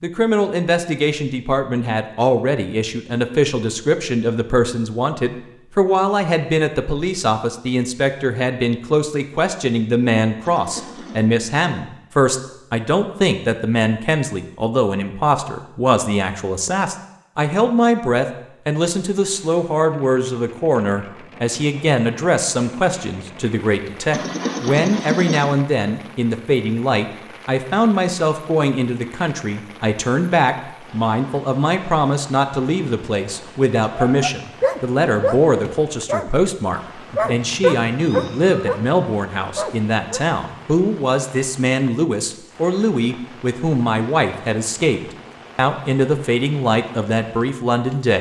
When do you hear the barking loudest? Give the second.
38 s.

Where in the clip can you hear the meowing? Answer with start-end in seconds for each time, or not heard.
10.4-11.2, 24.1-25.6, 37.5-38.9.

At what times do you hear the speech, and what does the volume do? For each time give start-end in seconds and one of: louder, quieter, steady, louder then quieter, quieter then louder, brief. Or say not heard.
0.0-48.1 steady.